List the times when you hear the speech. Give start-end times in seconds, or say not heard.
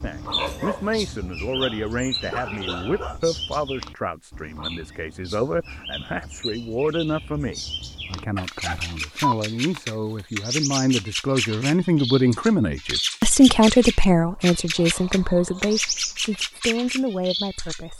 0.0-17.9.